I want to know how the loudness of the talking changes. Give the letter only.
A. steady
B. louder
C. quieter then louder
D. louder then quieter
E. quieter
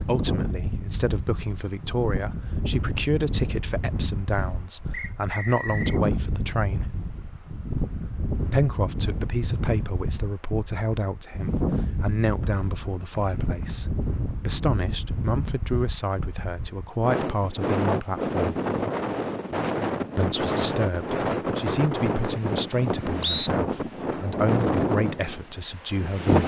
A.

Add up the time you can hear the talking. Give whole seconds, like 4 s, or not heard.
23 s.